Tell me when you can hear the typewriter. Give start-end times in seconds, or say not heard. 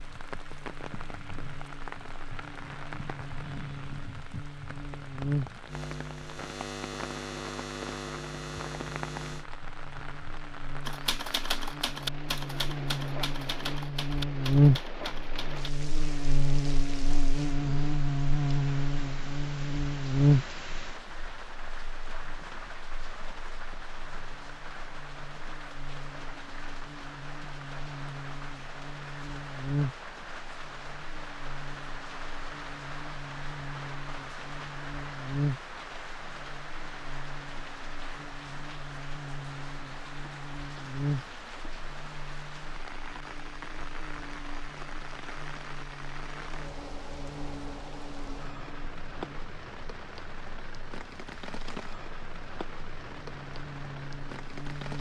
10.8-15.8.